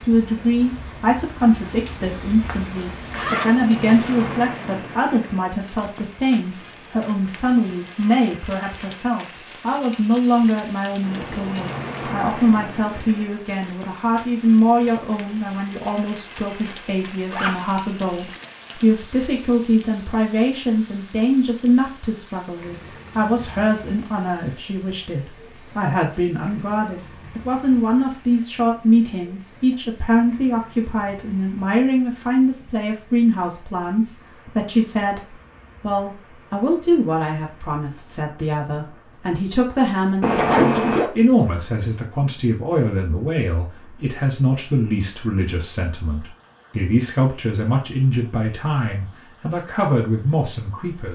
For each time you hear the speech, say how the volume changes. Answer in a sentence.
You can hear the speech from 0.0 to 51.1 s, at a steady volume.